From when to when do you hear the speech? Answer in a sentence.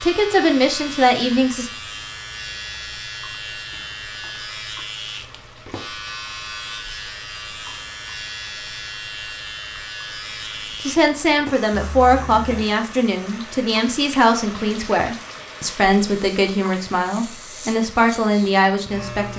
The speech can be heard from 0.0 to 1.7 s and from 10.8 to 19.3 s.